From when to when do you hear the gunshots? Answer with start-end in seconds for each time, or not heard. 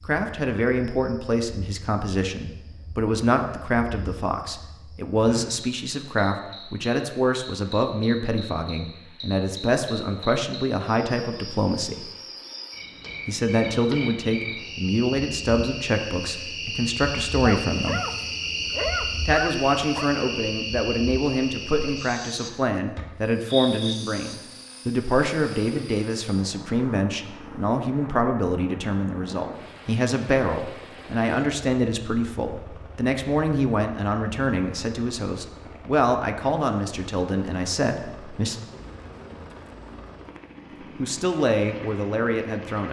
not heard.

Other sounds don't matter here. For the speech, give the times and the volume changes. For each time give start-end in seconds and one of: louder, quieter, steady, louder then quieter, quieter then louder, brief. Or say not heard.
0.0-12.1 steady
13.2-18.0 quieter then louder
19.2-38.5 steady
41.0-42.8 brief.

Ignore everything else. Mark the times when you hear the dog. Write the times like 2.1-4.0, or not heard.
17.4-20.1.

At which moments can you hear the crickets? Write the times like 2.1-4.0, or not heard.
0.0-24.4.